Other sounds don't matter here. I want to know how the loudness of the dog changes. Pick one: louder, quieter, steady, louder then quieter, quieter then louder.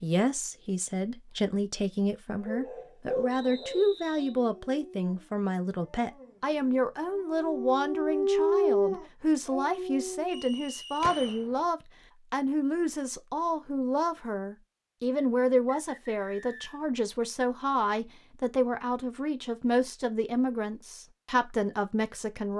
quieter then louder.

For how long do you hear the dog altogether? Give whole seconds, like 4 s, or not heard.
8 s.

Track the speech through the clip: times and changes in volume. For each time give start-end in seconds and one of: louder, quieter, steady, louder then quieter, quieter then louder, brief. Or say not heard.
0.0-22.5 steady.